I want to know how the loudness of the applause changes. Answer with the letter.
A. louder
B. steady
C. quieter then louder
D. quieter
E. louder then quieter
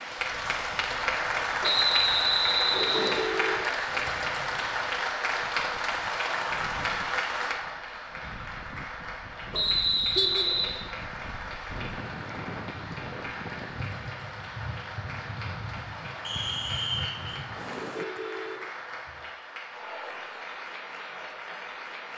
D.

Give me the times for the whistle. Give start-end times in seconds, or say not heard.
1.6-3.2, 9.5-10.8, 16.2-17.4.